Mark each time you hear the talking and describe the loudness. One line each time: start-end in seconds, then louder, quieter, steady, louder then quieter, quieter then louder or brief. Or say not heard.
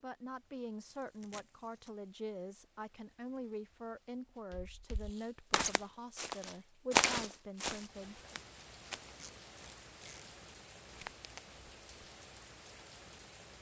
0.0-8.2 steady.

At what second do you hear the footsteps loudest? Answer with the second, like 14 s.
7 s.